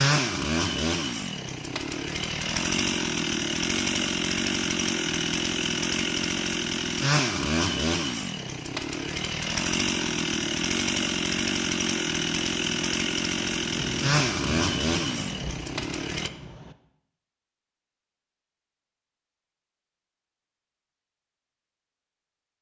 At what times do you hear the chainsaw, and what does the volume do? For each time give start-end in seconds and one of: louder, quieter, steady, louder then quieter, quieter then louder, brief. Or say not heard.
0.0-16.3 steady.